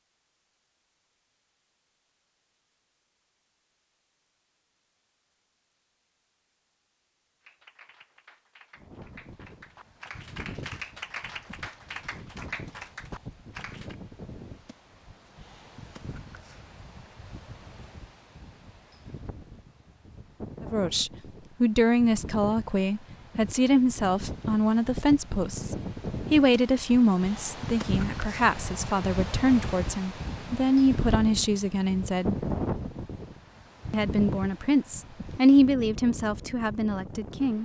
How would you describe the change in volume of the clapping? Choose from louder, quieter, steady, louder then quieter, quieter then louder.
louder.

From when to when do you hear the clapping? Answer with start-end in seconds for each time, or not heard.
7.4-13.9.